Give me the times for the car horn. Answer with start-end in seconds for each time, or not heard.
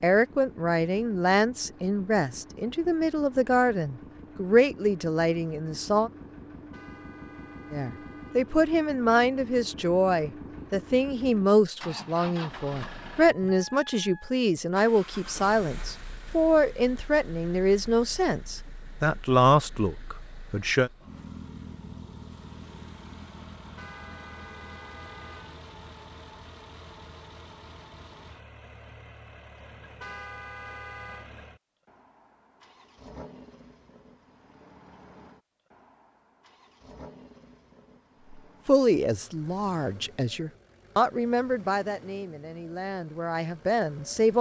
6.7-8.6, 23.8-25.6, 30.0-31.3.